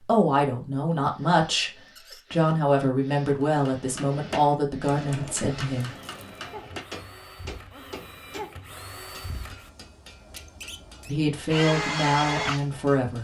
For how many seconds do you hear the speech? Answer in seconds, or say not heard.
8 s.